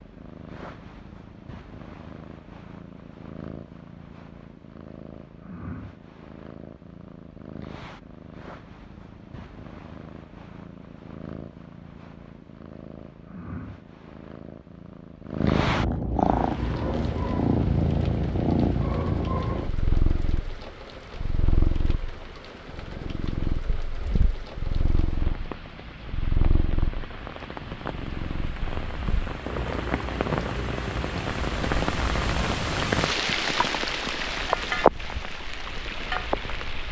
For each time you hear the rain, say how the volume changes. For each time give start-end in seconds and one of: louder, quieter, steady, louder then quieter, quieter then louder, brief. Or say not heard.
16.1-36.8 louder.